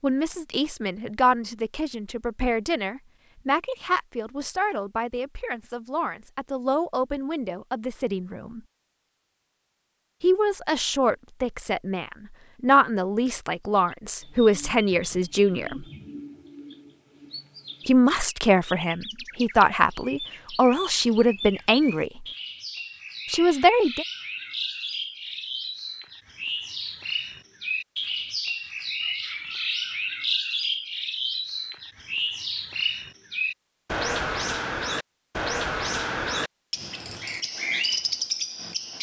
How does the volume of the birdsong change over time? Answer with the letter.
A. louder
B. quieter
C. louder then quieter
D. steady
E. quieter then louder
A.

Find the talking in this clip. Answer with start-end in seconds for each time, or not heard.
0.0-8.6, 10.2-15.8, 17.9-22.2, 23.2-24.1.